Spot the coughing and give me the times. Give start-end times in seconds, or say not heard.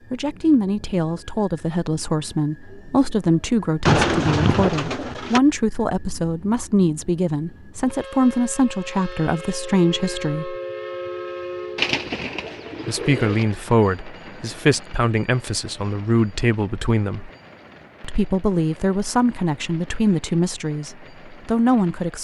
not heard.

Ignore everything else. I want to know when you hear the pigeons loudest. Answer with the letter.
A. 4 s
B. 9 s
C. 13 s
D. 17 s
A.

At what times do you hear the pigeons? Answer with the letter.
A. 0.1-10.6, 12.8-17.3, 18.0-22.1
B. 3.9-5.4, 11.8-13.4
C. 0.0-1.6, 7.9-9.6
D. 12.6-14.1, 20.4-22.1
B.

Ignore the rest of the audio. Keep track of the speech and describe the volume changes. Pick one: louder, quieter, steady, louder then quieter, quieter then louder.
steady.